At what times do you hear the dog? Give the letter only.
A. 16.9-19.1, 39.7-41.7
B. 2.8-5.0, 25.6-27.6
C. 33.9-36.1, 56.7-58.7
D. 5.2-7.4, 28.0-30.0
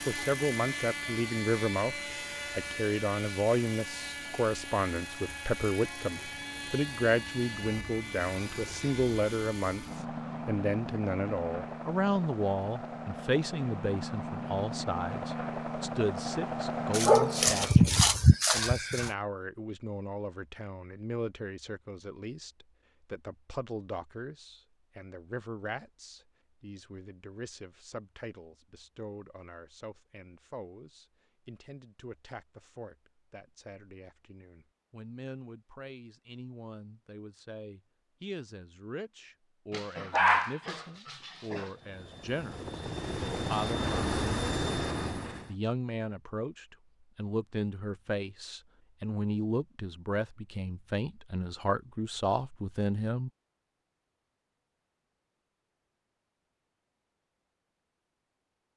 A.